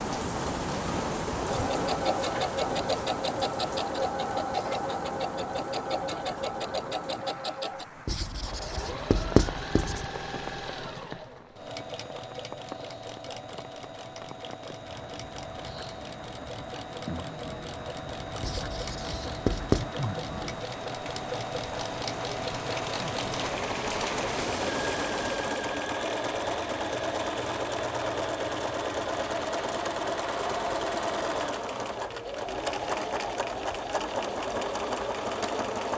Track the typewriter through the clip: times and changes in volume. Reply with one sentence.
The typewriter can't be heard in this clip.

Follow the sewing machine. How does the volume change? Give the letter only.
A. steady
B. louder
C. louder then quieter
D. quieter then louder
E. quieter
D.